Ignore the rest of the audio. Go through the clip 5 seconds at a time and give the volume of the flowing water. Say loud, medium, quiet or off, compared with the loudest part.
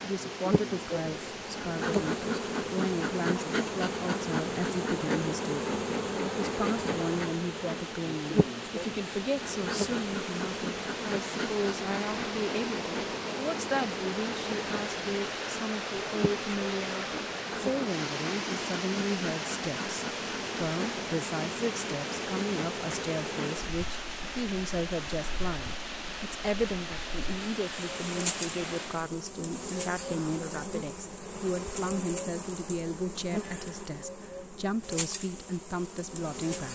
medium, medium, loud, loud, loud, loud, off, off.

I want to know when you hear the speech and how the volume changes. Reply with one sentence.
The speech can be heard from 0.0 to 36.7 s, at a steady volume.